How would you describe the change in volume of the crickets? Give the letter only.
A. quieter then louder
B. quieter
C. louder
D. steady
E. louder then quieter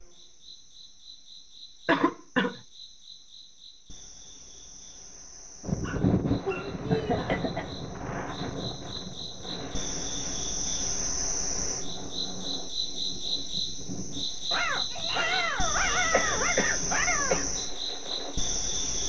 C.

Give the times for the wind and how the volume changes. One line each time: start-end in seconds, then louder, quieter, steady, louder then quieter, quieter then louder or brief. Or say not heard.
5.6-18.8 quieter.